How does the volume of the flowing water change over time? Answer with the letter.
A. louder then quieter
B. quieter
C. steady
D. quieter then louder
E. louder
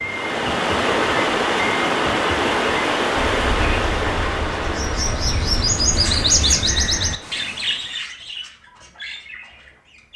B.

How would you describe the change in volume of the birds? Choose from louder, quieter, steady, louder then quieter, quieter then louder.
louder then quieter.